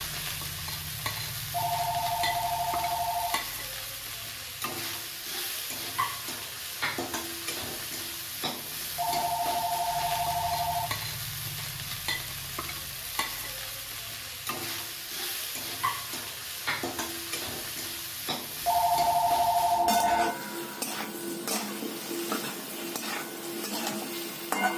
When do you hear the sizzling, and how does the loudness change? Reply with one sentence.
You can hear the sizzling from 0.0 to 24.7 s, at a steady volume.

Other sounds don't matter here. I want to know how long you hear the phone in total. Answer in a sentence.
You can hear the phone for 6 seconds altogether.